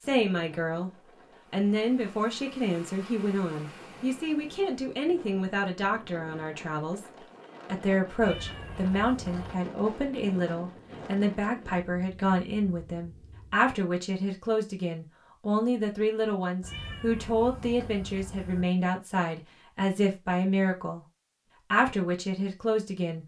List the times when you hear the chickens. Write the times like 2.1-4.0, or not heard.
not heard.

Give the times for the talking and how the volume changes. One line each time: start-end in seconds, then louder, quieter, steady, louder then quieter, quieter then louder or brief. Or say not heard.
0.0-0.9 brief
1.5-21.1 steady
21.7-23.2 brief.